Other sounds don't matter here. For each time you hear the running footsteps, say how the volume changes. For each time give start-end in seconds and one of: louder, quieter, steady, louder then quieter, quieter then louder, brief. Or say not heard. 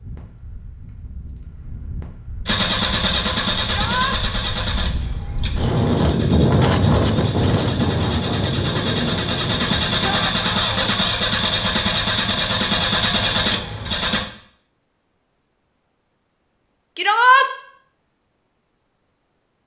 not heard.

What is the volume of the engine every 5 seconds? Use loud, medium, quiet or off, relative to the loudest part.
loud, medium, loud, off.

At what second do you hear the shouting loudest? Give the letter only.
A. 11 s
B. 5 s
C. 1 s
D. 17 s
D.